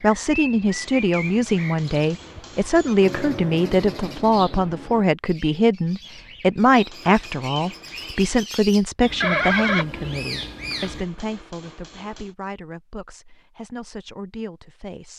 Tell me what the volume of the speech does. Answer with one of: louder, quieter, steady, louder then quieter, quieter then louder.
quieter.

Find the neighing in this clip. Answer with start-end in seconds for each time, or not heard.
9.2-10.9.